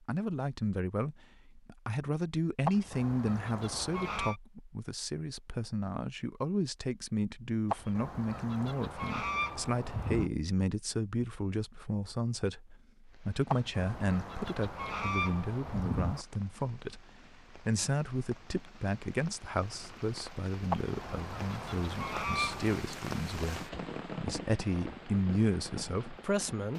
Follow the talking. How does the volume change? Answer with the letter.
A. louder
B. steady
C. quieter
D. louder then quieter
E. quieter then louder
B.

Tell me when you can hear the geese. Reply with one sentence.
The geese can be heard from 2.6 to 4.3 s, from 7.7 to 10.3 s, from 13.4 to 16.2 s and from 20.7 to 22.8 s.